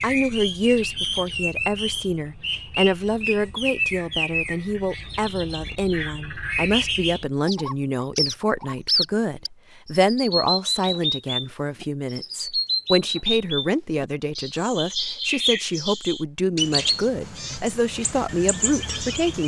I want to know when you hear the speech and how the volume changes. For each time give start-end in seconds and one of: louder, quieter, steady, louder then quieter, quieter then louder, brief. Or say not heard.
0.0-19.4 steady.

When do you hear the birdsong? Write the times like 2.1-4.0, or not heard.
0.0-19.4.